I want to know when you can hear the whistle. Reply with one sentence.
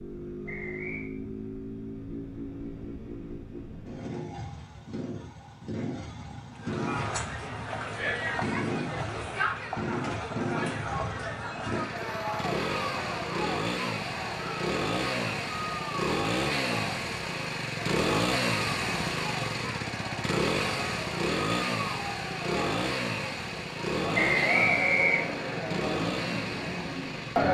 The whistle can be heard from 0.5 to 1.1 s and from 24.1 to 25.4 s.